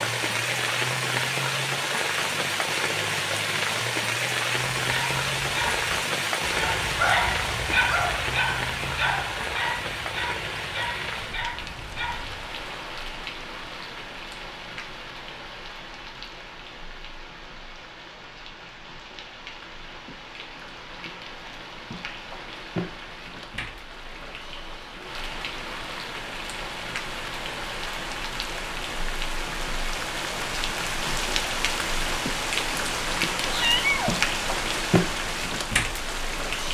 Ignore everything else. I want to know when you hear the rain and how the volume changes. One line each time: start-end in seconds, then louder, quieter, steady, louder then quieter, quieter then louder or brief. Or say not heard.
0.0-36.6 quieter then louder.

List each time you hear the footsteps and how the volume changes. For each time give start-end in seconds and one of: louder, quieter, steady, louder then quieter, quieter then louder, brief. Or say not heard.
not heard.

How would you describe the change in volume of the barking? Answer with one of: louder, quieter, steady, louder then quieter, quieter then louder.
quieter.